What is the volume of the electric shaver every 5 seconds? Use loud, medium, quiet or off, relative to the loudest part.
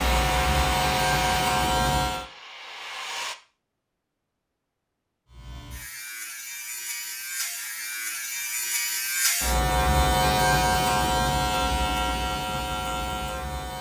loud, medium, loud.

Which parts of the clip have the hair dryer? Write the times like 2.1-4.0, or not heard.
0.0-3.4.